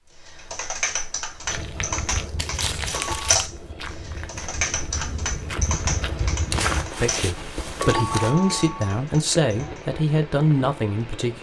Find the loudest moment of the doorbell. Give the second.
8 s.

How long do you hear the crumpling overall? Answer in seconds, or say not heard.
3 s.